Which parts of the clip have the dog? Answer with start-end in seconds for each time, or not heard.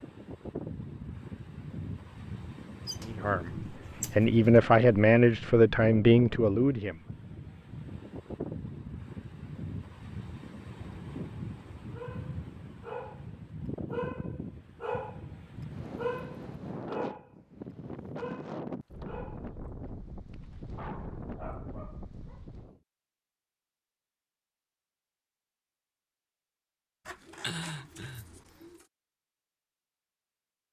11.9-13.2, 13.8-15.2, 15.9-17.3, 18.1-19.5, 20.3-22.4.